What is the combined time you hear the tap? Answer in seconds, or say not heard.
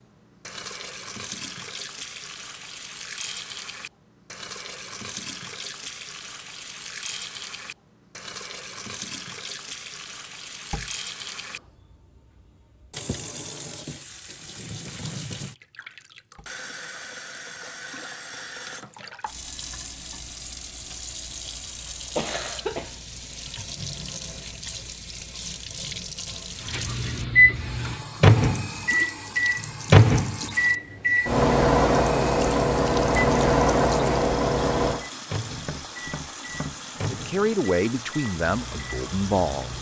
40 s.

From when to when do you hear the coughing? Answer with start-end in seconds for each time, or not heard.
22.1-22.9.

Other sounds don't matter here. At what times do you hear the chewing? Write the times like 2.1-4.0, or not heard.
not heard.